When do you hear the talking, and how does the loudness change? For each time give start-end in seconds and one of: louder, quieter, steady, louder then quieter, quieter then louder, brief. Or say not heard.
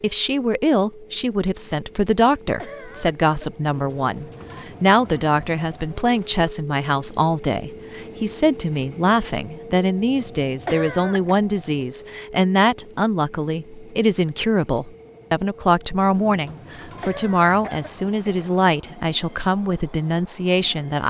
0.0-21.0 steady.